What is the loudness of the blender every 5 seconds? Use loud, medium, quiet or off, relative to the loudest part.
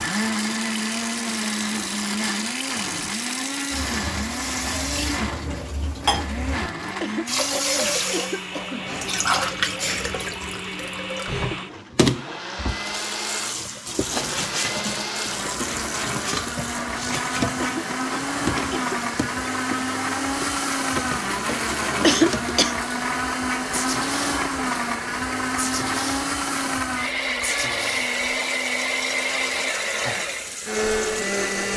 loud, medium, medium, loud, loud, loud, loud.